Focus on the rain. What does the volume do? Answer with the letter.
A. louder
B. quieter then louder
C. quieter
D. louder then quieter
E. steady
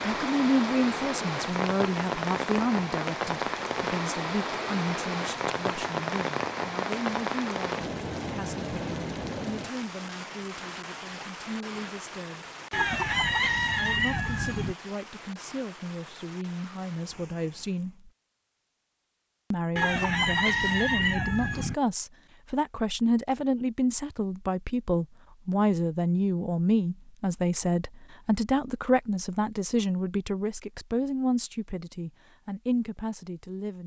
C.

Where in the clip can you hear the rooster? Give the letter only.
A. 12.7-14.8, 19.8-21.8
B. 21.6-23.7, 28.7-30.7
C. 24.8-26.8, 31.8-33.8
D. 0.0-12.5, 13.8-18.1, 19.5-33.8
A.